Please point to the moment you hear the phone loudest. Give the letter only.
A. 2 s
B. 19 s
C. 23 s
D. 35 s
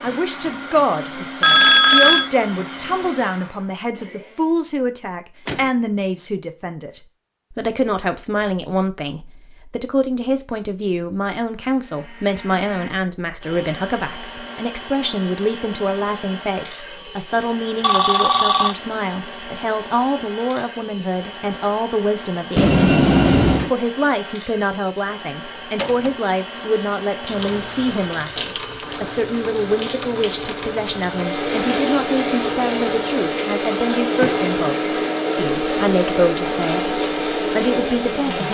A.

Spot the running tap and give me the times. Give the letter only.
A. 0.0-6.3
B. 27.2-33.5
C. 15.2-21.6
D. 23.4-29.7
B.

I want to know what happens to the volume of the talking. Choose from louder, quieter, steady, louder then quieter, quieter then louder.
steady.